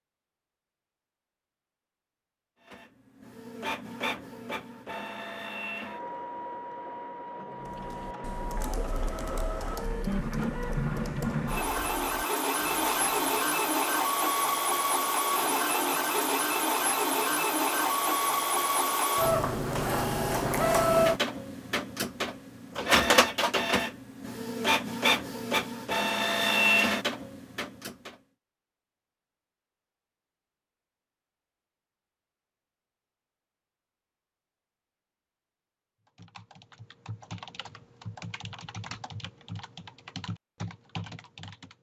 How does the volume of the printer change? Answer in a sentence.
The volume of the printer goes up.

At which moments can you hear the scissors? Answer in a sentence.
You can't hear the scissors here.